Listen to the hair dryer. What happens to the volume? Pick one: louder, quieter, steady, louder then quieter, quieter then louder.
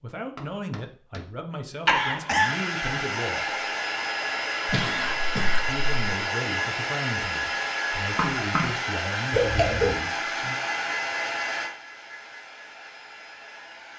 quieter.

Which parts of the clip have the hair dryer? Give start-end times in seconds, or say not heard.
2.4-13.9.